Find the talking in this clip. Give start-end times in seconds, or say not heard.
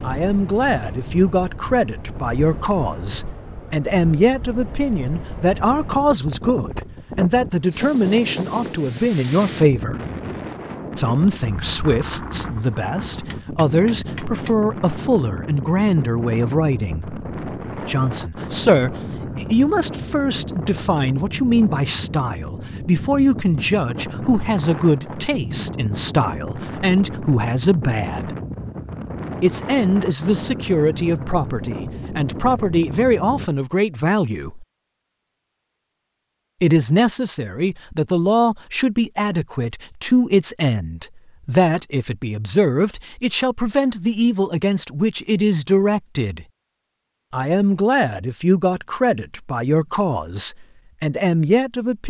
0.0-9.9, 10.9-28.4, 29.4-34.6, 36.6-46.5, 47.3-52.0.